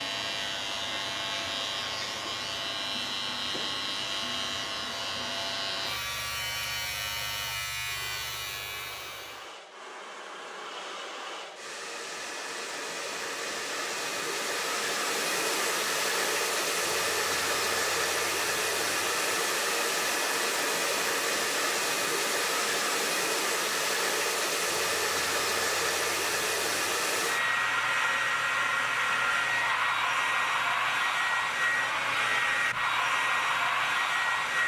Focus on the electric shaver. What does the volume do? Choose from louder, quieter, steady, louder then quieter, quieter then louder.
steady.